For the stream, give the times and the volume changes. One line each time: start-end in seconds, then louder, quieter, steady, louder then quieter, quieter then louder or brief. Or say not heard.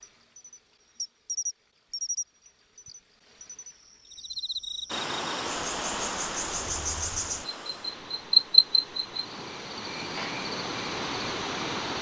4.8-11.9 quieter then louder.